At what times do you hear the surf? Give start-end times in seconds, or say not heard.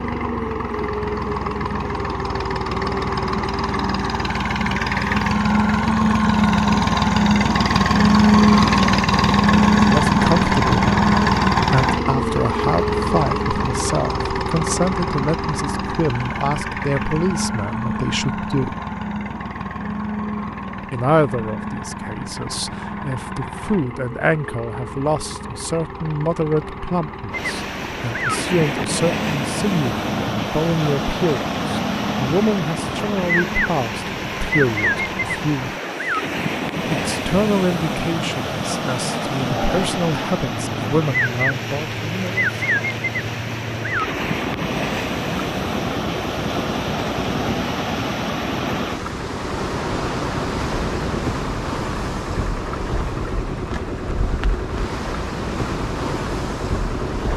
27.3-57.3.